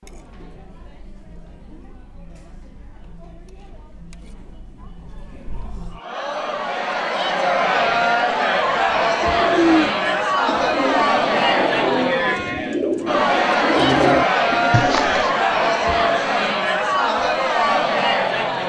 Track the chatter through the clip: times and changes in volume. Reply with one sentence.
You can hear the chatter from 0.0 to 18.6 s, getting louder.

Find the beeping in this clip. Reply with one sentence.
You can hear the beeping from 14.7 to 15.3 s.